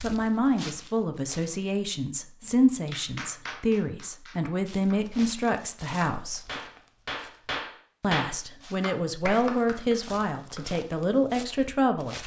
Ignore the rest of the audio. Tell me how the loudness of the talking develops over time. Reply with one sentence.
The loudness of the talking stays about the same.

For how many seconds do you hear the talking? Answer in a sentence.
The talking can be heard for 11 seconds in total.